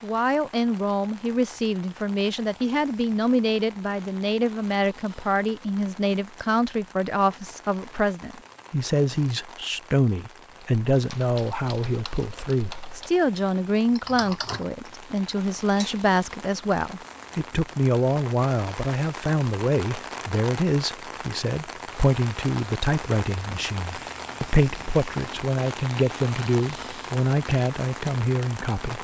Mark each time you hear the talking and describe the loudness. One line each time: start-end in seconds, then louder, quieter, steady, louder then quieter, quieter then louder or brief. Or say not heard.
0.0-28.9 steady.